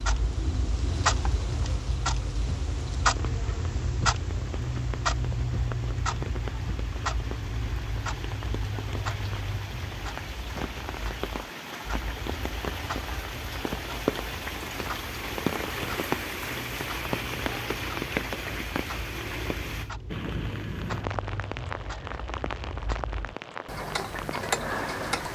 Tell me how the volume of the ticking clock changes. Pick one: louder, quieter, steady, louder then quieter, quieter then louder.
quieter then louder.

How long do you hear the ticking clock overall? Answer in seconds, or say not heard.
25 s.